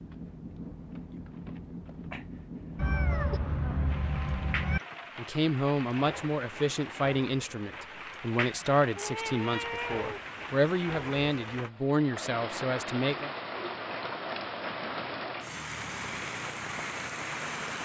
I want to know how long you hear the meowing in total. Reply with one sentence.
The meowing can be heard for 3 seconds in total.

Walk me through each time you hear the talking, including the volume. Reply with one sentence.
The talking can be heard from 5.2 to 13.3 s, at a steady volume.